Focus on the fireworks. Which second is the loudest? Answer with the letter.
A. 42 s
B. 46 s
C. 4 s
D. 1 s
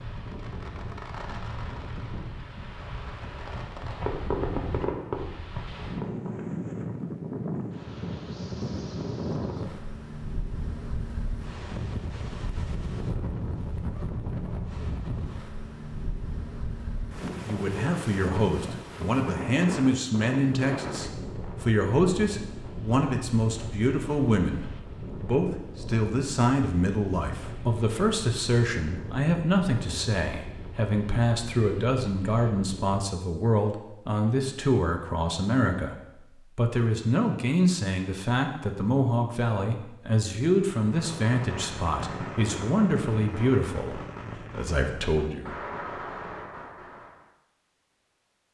C.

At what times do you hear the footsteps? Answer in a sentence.
You can't hear the footsteps here.